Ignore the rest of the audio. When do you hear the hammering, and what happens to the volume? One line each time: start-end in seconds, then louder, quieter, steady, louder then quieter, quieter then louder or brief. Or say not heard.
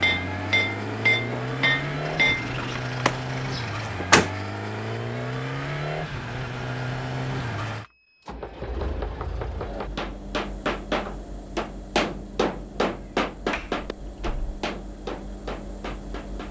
0.0-2.8 brief
8.3-16.4 louder then quieter.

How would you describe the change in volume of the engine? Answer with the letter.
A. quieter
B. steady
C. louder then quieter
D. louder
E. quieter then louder
A.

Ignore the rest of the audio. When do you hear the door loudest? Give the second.
4 s.